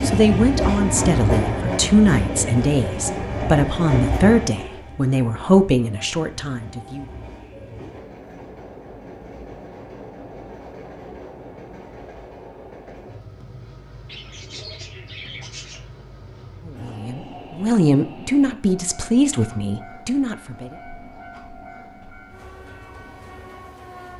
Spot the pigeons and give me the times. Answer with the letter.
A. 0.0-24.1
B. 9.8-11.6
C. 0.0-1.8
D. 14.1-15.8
D.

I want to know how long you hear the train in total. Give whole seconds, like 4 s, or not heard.
24 s.